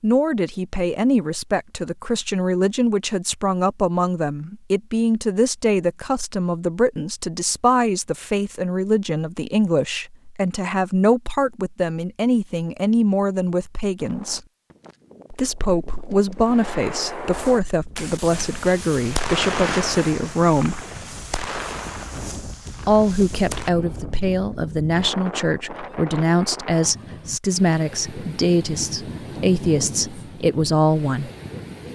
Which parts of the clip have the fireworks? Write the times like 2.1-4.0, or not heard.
16.4-23.7.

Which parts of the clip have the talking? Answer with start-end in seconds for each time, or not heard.
0.0-14.4, 15.3-20.9, 22.9-31.3.